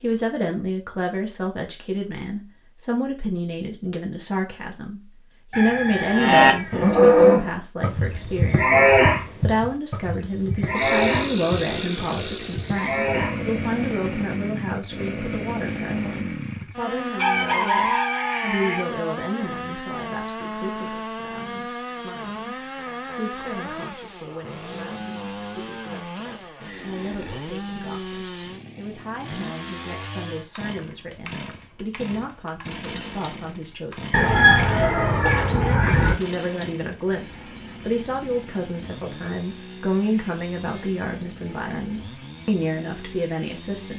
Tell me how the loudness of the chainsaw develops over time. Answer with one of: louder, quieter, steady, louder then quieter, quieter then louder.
quieter.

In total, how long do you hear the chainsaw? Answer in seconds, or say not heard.
33 s.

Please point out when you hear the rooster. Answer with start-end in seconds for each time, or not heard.
5.5-7.3, 17.1-18.9, 34.1-36.1.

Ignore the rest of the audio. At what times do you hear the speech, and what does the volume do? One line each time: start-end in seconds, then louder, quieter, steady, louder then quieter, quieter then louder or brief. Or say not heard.
0.0-43.9 quieter then louder.